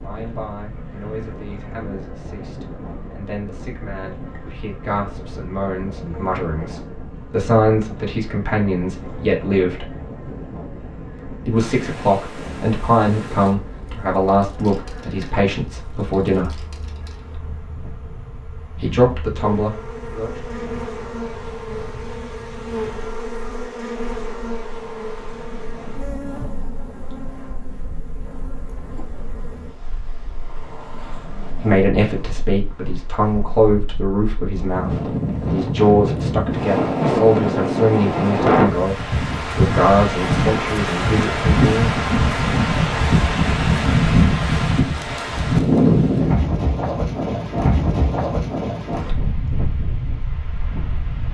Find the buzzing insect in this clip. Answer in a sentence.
You can hear the buzzing insect from 0.0 to 29.8 s.